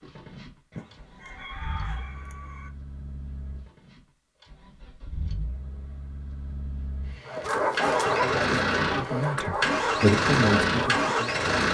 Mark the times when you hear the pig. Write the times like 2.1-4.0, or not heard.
not heard.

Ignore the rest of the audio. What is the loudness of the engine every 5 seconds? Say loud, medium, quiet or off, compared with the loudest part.
quiet, medium, loud.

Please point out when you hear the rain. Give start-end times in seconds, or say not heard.
not heard.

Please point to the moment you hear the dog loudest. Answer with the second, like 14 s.
8 s.